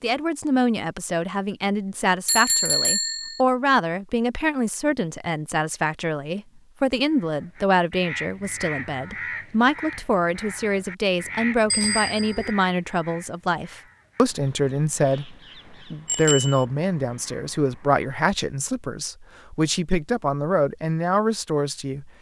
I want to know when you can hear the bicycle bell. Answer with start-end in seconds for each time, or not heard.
2.2-3.4, 11.7-12.6, 16.1-16.6.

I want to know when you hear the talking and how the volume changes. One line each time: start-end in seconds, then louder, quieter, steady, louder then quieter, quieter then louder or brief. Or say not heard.
0.0-22.1 steady.